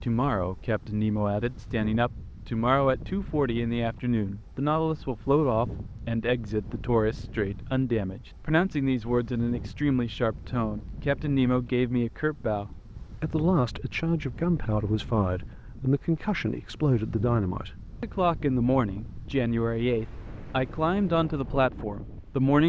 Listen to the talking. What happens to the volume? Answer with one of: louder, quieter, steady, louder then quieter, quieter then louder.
steady.